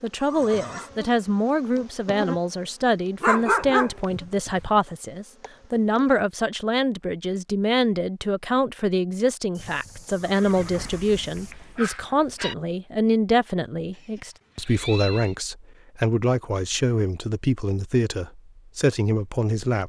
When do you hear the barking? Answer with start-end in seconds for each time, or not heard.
3.2-4.7, 10.6-12.6.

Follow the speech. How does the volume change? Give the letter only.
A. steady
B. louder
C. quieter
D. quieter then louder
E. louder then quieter
A.